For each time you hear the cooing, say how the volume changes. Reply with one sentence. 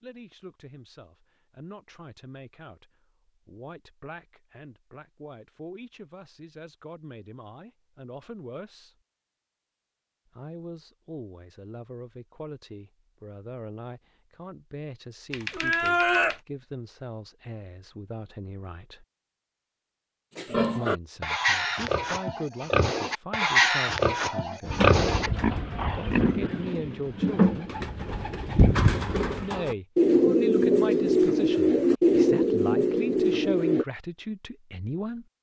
The cooing can be heard from 24.6 to 33.9 s, getting louder.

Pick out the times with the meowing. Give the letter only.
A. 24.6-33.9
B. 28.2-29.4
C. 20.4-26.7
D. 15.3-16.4
D.